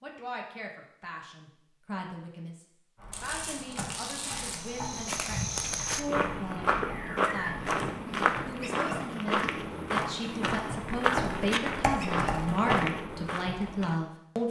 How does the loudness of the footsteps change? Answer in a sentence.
The volume of the footsteps stays about the same.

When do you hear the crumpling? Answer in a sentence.
The crumpling can be heard from 3.1 to 4.7 s.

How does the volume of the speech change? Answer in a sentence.
The loudness of the speech goes up.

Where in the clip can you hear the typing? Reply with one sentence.
The typing can be heard from 3.0 to 13.9 s.